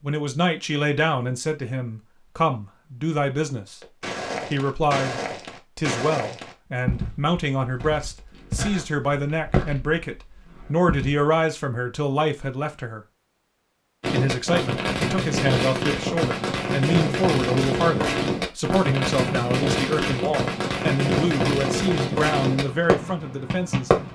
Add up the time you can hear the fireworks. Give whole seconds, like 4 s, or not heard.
10 s.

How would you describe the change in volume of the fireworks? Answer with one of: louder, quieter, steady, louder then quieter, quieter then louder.
steady.